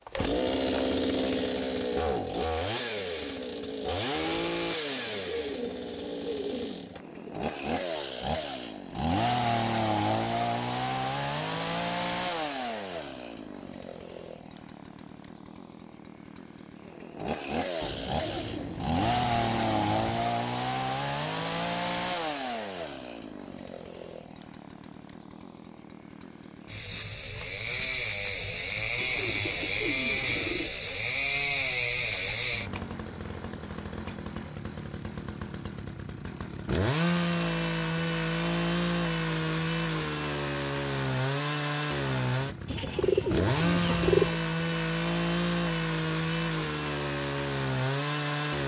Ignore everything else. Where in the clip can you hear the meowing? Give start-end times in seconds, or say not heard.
not heard.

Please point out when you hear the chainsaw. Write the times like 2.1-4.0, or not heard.
0.1-48.6.